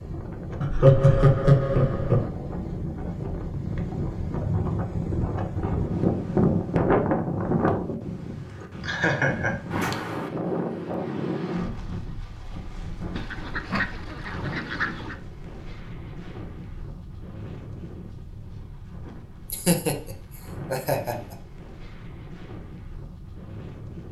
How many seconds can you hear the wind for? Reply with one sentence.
You can hear the wind for 24 seconds altogether.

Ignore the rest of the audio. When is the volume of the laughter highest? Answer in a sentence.
The volume of the laughter peaks at 1 second.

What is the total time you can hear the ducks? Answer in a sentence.
The ducks can be heard for 2 seconds in total.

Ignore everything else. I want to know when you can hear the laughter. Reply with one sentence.
The laughter can be heard from 0.6 to 2.2 s, from 8.8 to 9.6 s and from 19.5 to 21.4 s.